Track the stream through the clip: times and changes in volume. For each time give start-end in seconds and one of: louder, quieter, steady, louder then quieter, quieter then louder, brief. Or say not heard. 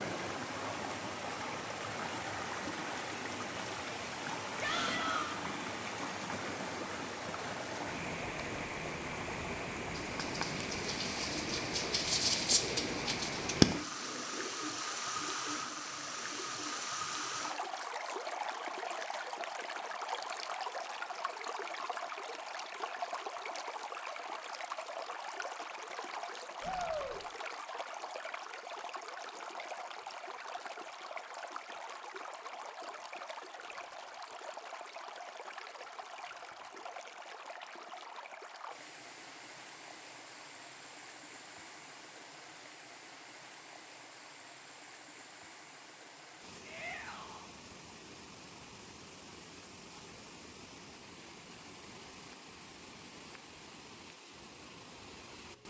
0.0-55.6 quieter.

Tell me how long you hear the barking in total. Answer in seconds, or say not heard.
not heard.